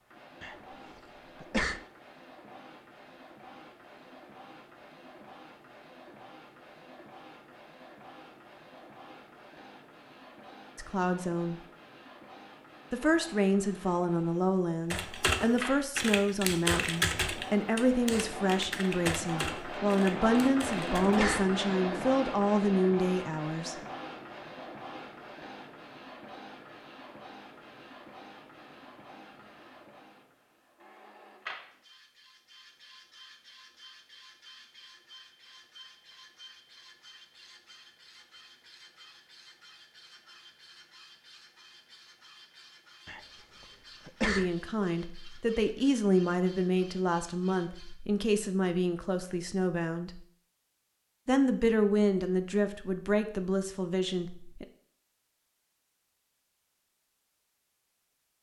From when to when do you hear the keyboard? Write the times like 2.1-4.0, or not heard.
14.9-21.2.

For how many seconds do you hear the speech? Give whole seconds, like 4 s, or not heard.
21 s.